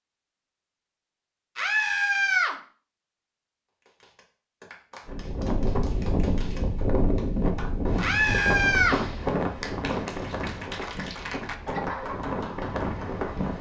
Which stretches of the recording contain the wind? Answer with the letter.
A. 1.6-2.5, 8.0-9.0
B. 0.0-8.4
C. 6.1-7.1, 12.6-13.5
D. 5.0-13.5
D.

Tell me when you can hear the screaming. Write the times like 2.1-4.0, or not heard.
1.6-2.5, 8.0-9.0.